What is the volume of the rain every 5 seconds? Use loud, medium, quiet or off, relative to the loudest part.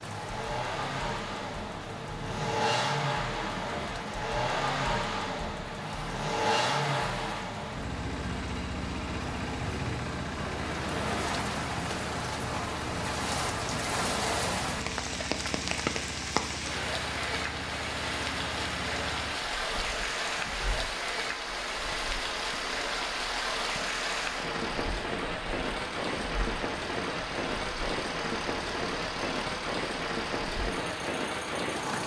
medium, medium, loud, loud, loud, loud, loud.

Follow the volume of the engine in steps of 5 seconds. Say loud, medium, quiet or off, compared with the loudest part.
loud, loud, medium, medium, medium, medium, medium.